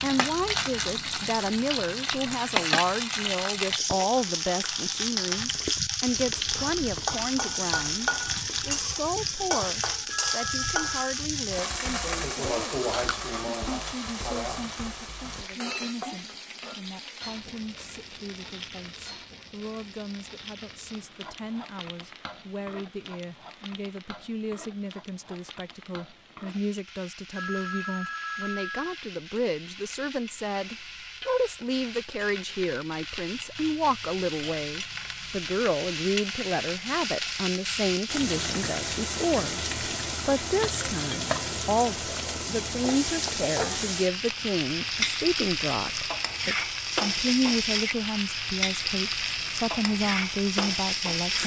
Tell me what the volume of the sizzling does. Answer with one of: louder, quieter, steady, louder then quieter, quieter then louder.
quieter then louder.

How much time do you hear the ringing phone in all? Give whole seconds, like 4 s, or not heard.
3 s.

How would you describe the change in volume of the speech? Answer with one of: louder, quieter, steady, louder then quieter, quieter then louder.
quieter then louder.